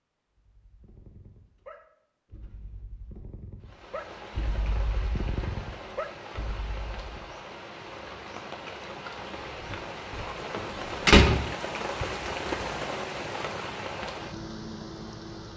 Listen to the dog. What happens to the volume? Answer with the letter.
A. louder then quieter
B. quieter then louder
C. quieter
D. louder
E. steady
D.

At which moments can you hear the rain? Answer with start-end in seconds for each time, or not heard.
3.6-15.5.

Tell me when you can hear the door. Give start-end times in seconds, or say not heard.
10.6-11.4.